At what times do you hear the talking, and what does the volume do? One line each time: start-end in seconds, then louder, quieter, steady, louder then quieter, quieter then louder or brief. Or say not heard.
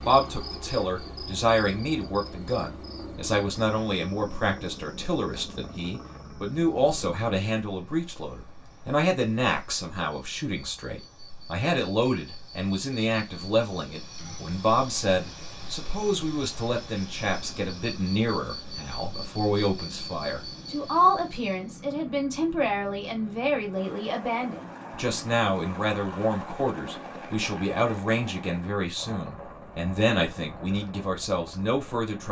0.0-32.2 steady.